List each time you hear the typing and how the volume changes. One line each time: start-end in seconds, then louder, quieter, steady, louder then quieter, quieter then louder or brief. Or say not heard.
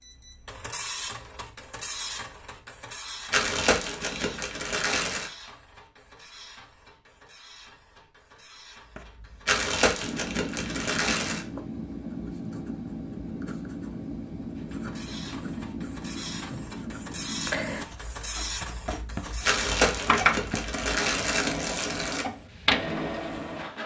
not heard.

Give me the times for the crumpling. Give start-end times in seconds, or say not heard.
3.3-5.3, 9.4-11.4, 19.4-22.2.